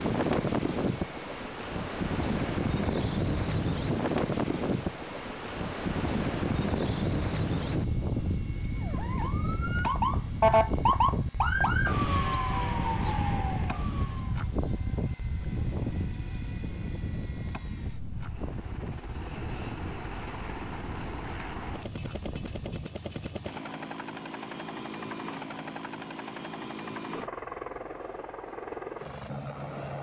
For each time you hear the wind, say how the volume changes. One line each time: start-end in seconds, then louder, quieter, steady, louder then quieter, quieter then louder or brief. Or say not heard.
0.0-22.9 quieter.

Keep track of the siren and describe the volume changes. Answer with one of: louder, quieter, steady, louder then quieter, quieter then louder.
louder then quieter.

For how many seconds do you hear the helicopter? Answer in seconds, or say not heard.
30 s.